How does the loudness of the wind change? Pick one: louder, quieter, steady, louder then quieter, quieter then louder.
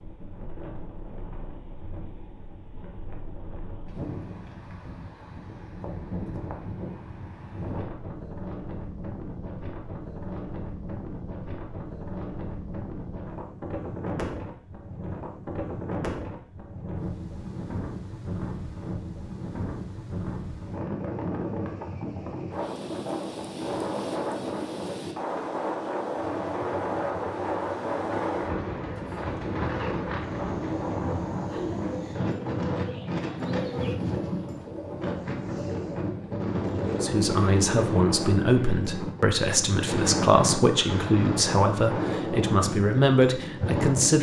louder.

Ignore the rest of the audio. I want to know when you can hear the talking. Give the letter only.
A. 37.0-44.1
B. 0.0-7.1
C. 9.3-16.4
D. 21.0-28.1
A.